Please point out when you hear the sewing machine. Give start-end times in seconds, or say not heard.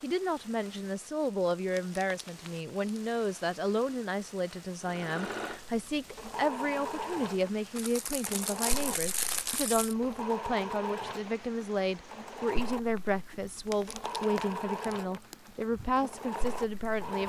4.8-17.2.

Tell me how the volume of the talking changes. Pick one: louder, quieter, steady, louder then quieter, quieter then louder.
steady.